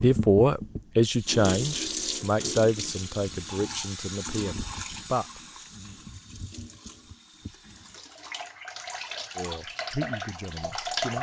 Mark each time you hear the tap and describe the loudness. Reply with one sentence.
You can hear the tap from 0.0 to 11.1 s, getting quieter then louder.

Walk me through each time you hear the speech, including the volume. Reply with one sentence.
You can hear the speech from 0.0 to 5.4 s, getting quieter; and briefly from 9.3 to 11.1 s.